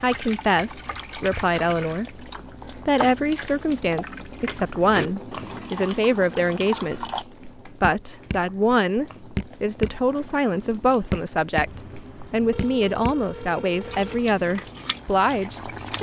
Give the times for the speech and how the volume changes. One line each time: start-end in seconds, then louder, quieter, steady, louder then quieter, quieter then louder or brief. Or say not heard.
0.0-15.9 steady.